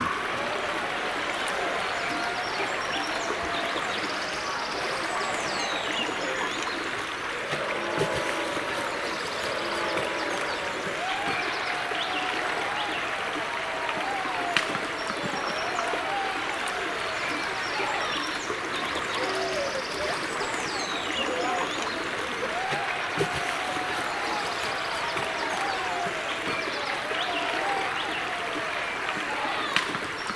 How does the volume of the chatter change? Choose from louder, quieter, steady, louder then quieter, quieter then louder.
steady.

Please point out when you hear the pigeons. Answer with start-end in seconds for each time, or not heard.
not heard.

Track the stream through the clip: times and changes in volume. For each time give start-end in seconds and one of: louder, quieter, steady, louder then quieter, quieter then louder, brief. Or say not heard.
0.0-30.3 steady.